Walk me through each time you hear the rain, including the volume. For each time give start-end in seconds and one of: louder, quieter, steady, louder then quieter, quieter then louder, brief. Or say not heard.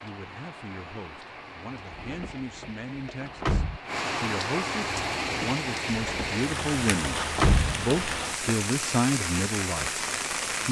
0.0-10.6 louder.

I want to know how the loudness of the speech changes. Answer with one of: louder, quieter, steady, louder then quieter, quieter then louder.
louder.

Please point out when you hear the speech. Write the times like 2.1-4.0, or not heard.
0.0-10.1.